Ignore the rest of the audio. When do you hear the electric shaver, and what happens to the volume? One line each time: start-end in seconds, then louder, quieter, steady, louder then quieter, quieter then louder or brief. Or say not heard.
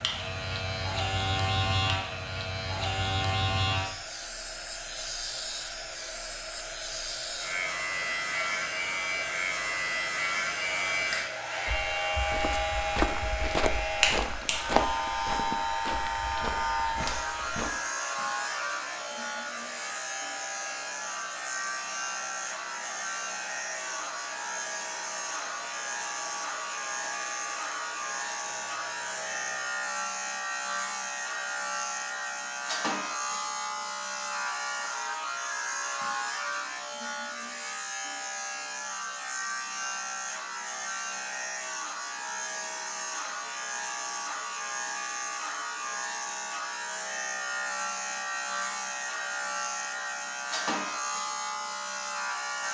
0.0-52.6 steady.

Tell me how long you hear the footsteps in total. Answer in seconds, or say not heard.
6 s.